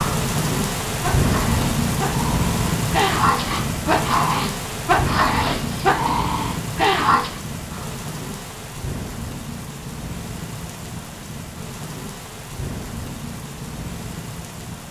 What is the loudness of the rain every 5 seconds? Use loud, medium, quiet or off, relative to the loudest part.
loud, medium, medium.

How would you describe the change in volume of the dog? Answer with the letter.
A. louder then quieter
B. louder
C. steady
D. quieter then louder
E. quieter
B.